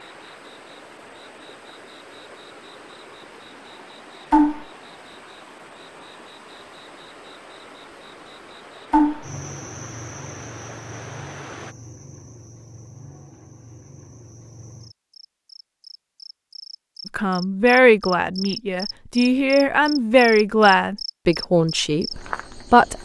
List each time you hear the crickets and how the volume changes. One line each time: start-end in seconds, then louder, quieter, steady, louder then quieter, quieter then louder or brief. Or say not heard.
0.0-22.9 quieter then louder.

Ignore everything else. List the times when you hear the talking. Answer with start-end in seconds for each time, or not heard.
17.1-22.9.